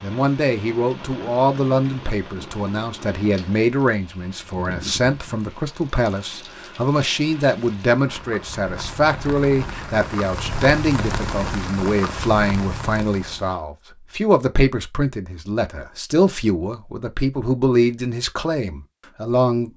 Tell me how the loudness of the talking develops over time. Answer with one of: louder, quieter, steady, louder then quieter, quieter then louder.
steady.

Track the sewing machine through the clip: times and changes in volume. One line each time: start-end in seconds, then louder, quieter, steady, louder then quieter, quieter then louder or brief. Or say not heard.
not heard.